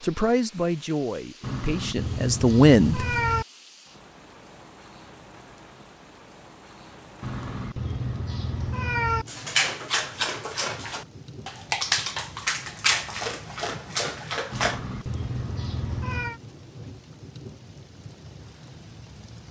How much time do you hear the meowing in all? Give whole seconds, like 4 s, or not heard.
6 s.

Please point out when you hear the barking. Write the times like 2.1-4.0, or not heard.
9.2-14.8.